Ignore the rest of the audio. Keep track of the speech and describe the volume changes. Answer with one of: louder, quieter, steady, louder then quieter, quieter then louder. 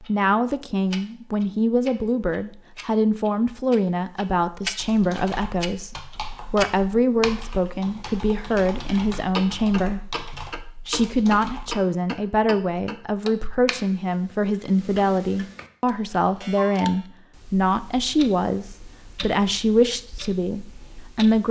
steady.